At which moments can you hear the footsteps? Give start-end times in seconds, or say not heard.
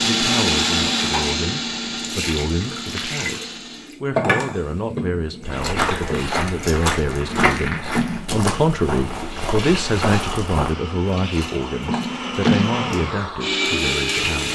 5.5-10.8.